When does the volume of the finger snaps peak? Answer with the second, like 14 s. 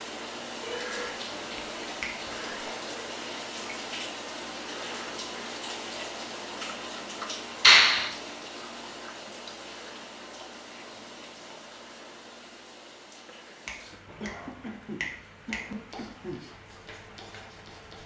8 s.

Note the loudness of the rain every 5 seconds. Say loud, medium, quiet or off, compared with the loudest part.
loud, loud, medium, quiet.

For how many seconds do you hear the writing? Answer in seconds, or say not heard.
2 s.